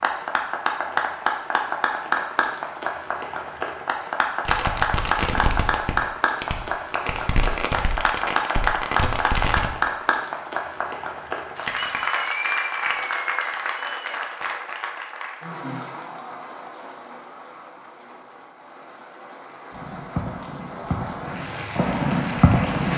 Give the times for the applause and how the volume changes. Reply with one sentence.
The applause can be heard from 0.0 to 22.9 s, getting quieter.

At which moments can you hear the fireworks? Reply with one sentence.
You can hear the fireworks from 4.5 to 9.7 s and from 19.7 to 22.9 s.